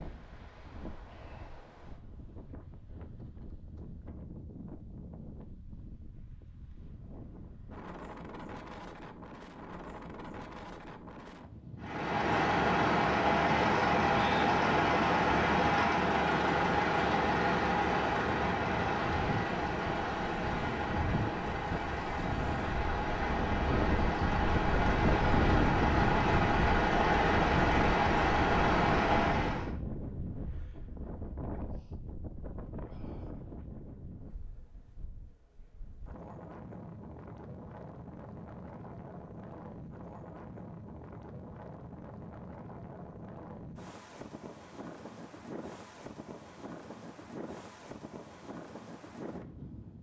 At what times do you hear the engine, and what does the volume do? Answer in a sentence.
You can hear the engine from 11.8 to 29.7 s, getting quieter then louder.